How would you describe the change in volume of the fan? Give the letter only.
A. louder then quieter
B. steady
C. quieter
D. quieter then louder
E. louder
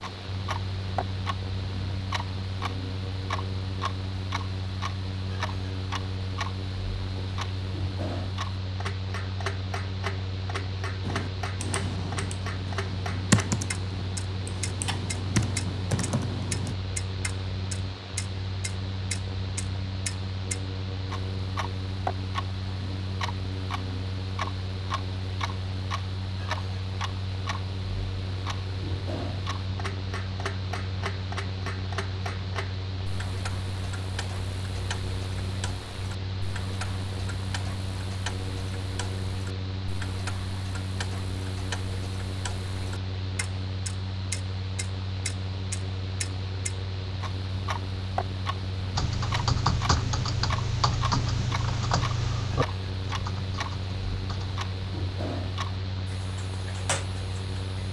B.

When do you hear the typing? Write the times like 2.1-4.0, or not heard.
11.0-16.8, 49.0-54.5.